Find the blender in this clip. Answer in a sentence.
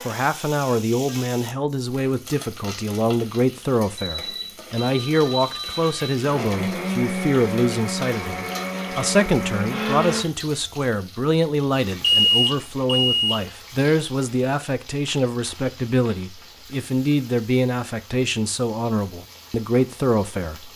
The blender can be heard from 6.3 to 10.2 s.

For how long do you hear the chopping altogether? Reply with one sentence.
You can't hear the chopping here.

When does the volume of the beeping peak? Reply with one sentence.
The loudest moment of the beeping is at 12 seconds.